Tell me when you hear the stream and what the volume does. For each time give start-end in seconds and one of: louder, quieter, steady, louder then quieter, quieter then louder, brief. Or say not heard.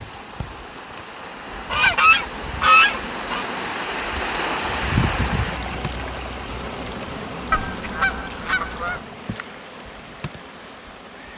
0.0-11.3 louder then quieter.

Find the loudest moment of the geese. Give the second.
3 s.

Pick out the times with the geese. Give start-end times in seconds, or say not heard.
1.7-3.5, 7.5-9.0.